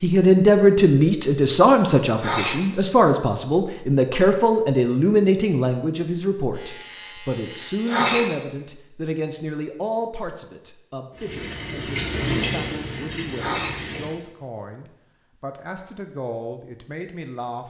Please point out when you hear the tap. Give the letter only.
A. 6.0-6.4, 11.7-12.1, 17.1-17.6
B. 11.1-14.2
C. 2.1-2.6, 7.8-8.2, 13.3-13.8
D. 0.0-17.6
B.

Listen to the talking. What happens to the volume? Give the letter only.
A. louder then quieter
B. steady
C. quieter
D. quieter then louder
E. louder
C.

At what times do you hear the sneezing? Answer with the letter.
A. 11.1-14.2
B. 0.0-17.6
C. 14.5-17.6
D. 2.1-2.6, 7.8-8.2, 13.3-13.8
D.